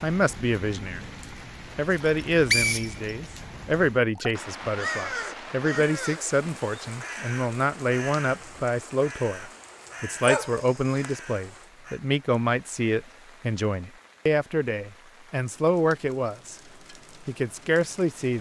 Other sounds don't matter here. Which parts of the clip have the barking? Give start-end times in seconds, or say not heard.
10.2-11.1.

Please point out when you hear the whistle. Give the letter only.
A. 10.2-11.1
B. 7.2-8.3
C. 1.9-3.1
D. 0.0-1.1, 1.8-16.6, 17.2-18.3
C.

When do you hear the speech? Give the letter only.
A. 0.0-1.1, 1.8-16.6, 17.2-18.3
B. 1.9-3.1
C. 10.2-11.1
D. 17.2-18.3
A.